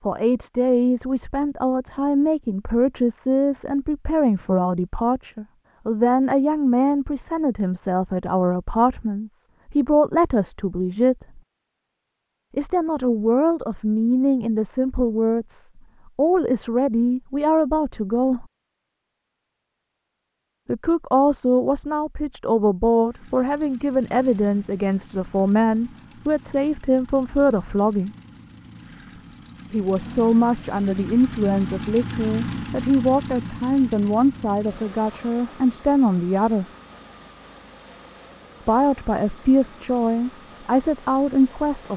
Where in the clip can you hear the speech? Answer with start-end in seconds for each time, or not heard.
0.1-11.4, 12.6-18.4, 20.6-28.1, 29.7-36.6, 38.6-41.9.